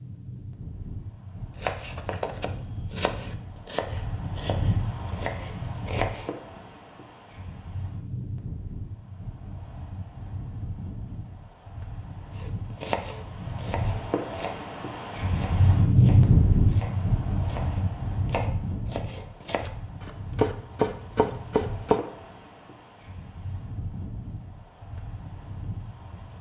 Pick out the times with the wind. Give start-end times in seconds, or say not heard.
0.0-26.3.